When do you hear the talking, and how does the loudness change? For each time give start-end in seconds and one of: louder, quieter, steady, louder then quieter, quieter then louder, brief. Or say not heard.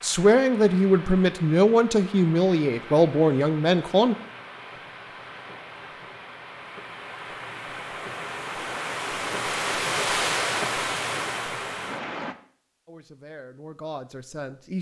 0.0-4.2 steady
12.8-14.7 brief.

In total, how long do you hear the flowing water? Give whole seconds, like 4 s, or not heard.
12 s.